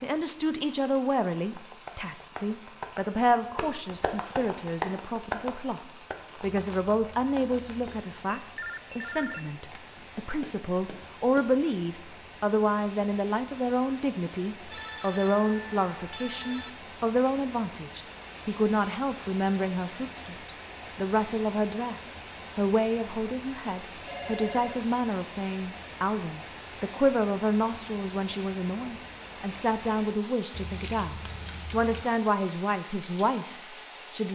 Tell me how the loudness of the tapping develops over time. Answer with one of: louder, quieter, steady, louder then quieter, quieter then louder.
louder then quieter.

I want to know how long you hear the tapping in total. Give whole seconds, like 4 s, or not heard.
10 s.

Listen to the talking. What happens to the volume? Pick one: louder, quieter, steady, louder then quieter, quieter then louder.
steady.